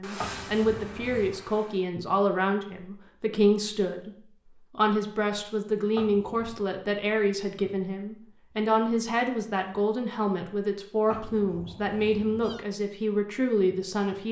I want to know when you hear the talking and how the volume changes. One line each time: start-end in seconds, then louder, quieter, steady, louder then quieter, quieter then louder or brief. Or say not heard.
0.0-14.2 steady.